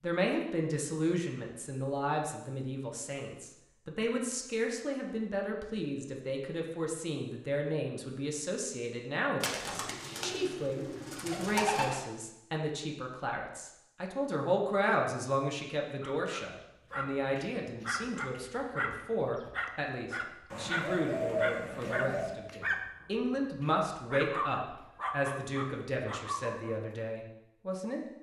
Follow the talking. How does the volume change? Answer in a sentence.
The volume of the talking stays about the same.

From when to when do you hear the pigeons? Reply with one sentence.
The pigeons can be heard from 9.4 to 11.9 s and from 20.5 to 22.4 s.